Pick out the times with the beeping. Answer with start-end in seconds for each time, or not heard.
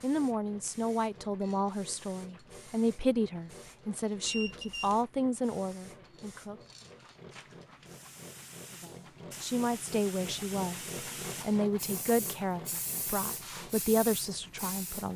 4.2-5.0.